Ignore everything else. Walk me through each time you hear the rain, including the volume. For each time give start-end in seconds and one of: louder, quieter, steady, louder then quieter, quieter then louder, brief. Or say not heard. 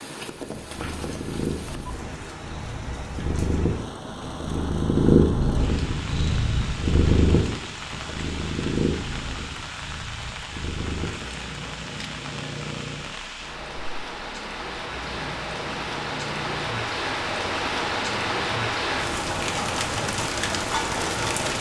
0.0-21.5 louder.